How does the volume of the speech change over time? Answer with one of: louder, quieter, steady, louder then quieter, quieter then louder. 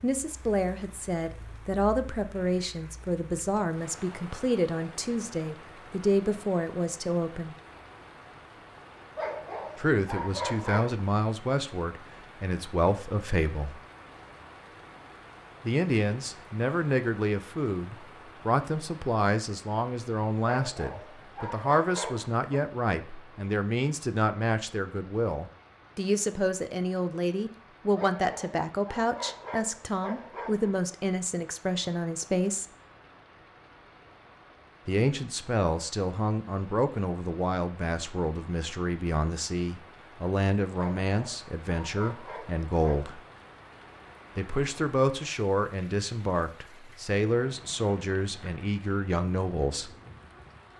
steady.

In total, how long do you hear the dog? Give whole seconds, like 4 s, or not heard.
9 s.